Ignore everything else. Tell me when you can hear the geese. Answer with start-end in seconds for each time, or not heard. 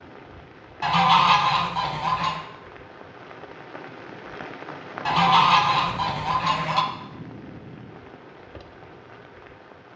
0.8-2.4, 5.0-6.8.